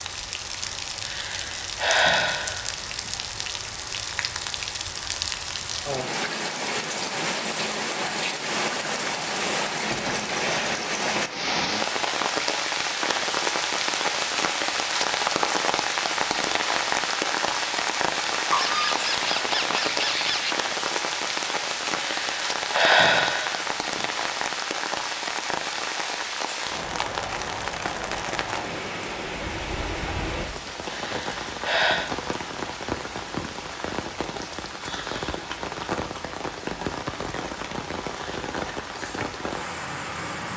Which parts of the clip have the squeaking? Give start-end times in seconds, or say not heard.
18.5-20.6.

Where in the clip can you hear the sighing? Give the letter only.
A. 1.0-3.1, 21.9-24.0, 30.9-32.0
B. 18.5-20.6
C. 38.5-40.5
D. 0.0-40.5
A.